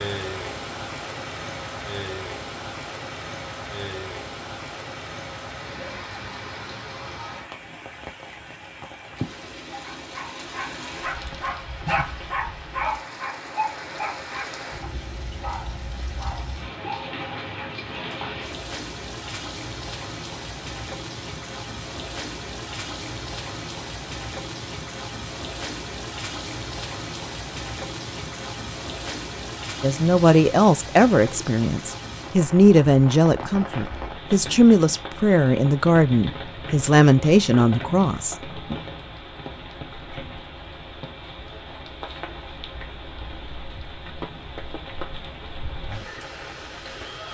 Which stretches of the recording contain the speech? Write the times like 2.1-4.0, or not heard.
29.8-38.8.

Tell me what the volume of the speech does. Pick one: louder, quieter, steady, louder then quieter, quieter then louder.
steady.